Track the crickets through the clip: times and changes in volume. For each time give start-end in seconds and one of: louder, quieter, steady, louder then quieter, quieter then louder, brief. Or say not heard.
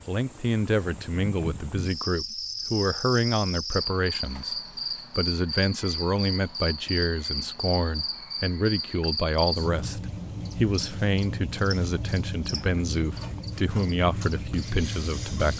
0.0-15.5 steady.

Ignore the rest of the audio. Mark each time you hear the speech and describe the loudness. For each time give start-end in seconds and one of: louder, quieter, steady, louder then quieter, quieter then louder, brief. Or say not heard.
0.1-15.5 steady.